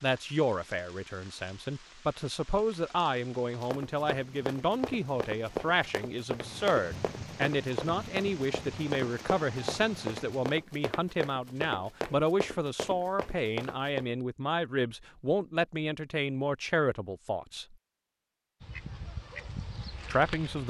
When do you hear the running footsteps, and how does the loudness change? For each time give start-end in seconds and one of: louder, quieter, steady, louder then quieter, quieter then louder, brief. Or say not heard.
3.6-14.1 steady.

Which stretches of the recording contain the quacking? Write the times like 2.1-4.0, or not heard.
18.6-20.6.